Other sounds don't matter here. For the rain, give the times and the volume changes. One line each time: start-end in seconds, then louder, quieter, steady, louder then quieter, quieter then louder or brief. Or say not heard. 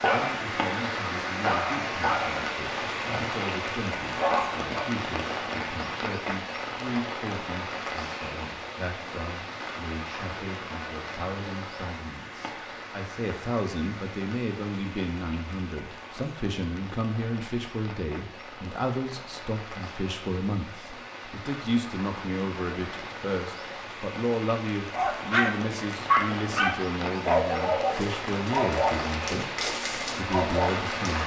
0.0-31.2 quieter then louder.